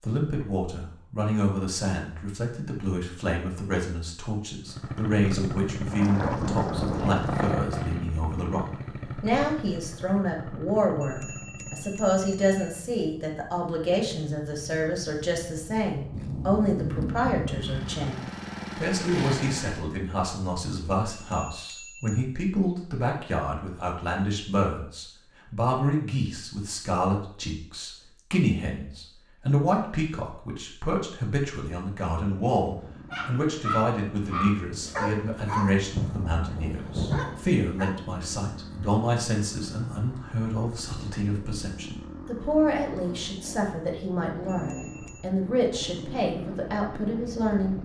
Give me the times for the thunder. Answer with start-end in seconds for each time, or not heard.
5.9-7.5, 16.1-18.1, 36.0-37.5.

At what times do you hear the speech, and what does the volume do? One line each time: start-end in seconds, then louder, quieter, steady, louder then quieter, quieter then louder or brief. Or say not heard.
0.0-47.8 steady.